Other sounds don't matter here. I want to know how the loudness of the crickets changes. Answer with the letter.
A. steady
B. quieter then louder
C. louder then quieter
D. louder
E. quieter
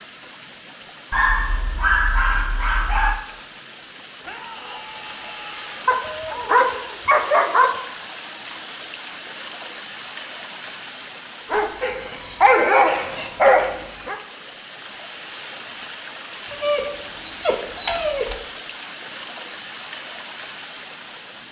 A.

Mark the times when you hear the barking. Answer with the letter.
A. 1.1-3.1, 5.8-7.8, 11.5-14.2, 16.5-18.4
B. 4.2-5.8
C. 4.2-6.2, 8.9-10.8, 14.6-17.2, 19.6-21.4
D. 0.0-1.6
A.